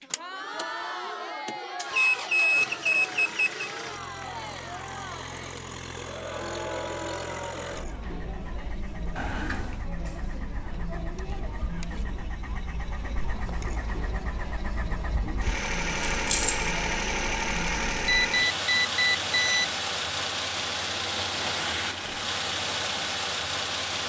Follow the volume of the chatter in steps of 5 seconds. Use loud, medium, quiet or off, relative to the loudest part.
loud, loud, loud, loud, off.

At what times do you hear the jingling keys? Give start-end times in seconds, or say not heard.
15.9-16.7.